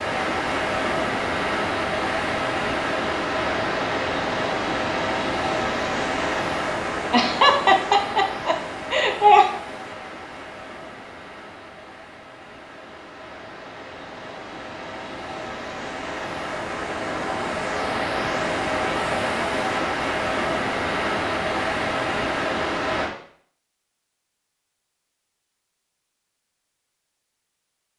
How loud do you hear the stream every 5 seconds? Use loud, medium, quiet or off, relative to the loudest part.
loud, loud, quiet, loud, loud, off.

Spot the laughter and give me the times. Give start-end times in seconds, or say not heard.
7.1-9.4.